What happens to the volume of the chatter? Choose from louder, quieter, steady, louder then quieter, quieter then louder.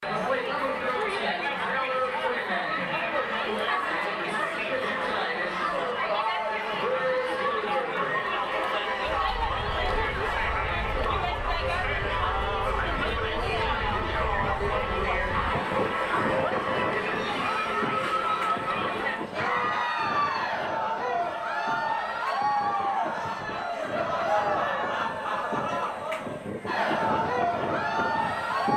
steady.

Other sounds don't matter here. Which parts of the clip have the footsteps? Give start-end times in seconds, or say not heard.
not heard.